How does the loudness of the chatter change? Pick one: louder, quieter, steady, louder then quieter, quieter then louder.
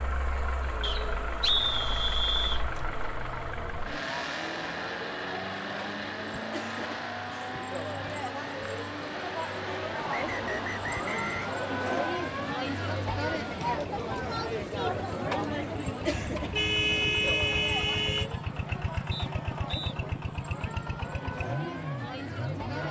louder then quieter.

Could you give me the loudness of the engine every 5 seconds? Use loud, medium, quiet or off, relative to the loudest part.
loud, loud, medium, loud, loud.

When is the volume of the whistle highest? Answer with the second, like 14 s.
2 s.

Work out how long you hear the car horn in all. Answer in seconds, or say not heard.
2 s.